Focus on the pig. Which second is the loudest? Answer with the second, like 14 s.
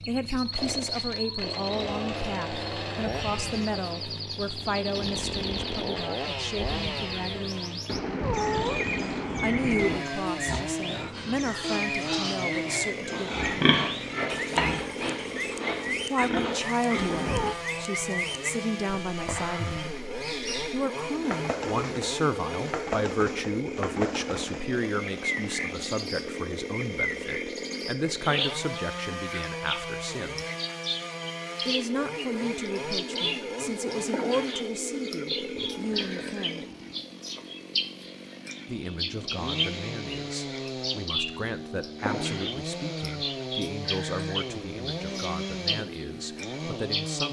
14 s.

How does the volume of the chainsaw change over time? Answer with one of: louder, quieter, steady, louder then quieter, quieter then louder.
steady.